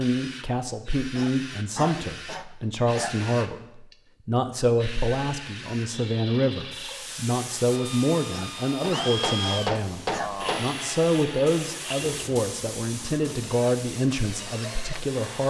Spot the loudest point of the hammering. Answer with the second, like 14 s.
10 s.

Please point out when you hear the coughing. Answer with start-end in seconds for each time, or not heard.
1.1-3.1, 8.3-10.3.